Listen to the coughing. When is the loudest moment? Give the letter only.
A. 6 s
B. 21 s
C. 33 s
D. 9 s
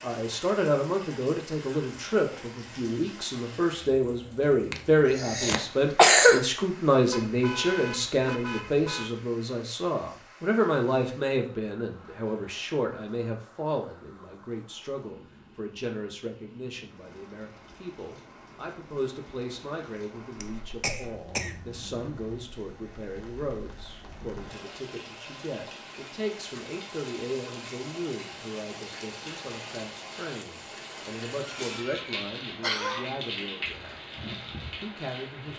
A.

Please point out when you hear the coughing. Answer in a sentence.
You can hear the coughing from 4.7 to 6.4 s, from 20.4 to 21.6 s and from 31.4 to 33.0 s.